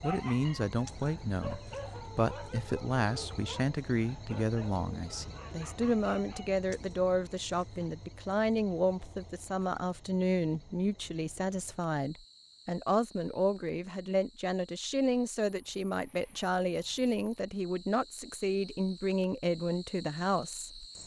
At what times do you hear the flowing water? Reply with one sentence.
The flowing water can't be heard in this clip.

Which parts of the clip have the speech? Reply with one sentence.
You can hear the speech from 0.0 to 20.9 s.